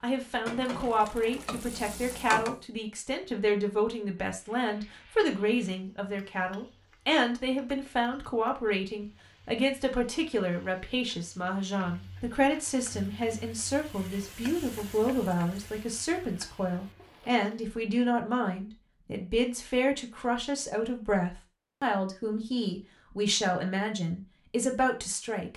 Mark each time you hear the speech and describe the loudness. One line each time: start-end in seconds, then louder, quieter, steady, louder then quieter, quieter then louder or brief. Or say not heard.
0.0-25.5 steady.